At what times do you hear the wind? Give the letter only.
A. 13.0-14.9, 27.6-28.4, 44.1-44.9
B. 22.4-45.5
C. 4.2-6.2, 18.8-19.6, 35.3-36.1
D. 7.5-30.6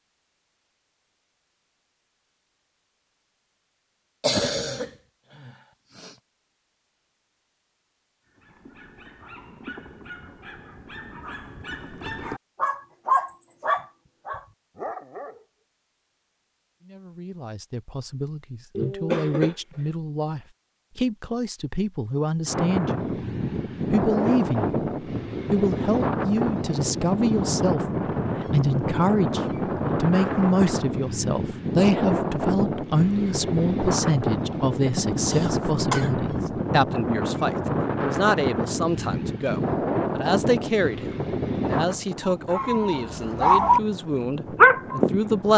B.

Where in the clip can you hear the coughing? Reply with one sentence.
You can hear the coughing from 4.2 to 6.2 s, from 18.8 to 19.6 s and from 35.3 to 36.1 s.